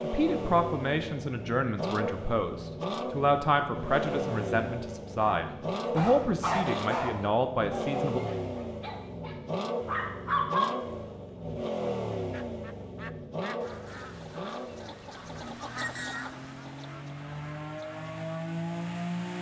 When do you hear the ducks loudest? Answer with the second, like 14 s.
16 s.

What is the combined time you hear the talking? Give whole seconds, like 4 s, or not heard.
8 s.